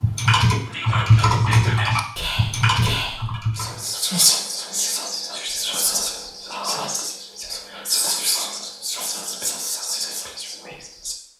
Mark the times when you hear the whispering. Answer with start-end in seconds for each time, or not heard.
0.7-11.2.